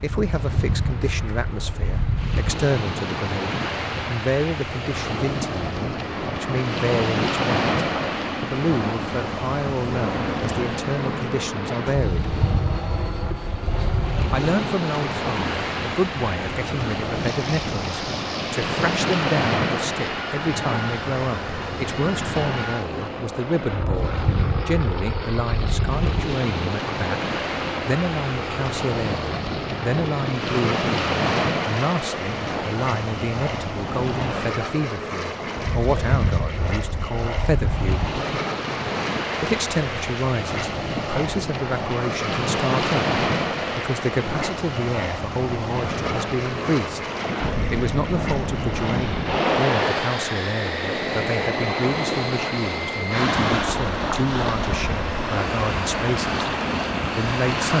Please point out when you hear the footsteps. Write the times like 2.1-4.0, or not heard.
not heard.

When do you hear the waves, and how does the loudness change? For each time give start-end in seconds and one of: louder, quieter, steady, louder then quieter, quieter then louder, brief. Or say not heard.
0.0-57.7 steady.